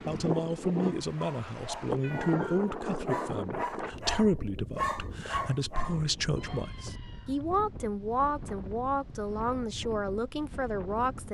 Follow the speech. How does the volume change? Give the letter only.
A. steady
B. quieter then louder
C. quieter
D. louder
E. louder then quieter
A.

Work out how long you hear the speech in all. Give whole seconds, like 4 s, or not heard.
11 s.